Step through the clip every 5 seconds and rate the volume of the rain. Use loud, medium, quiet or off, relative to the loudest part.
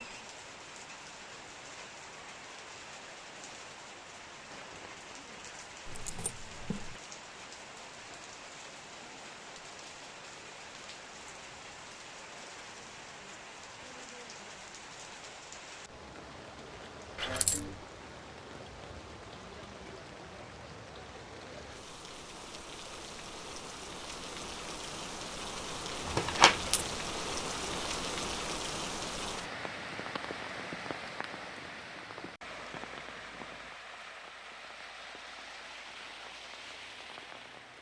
medium, medium, medium, medium, medium, loud, medium, medium.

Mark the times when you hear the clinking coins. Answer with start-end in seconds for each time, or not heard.
5.8-7.0, 17.1-17.7, 26.1-26.9.